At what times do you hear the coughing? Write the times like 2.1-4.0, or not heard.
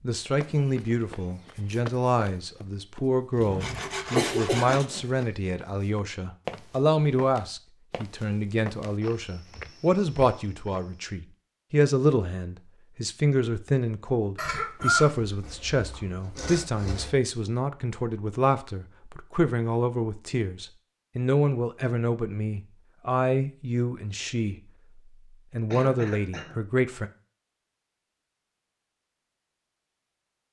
3.4-4.8, 14.3-16.0, 25.7-26.6.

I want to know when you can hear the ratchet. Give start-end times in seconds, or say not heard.
not heard.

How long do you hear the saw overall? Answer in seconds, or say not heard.
3 s.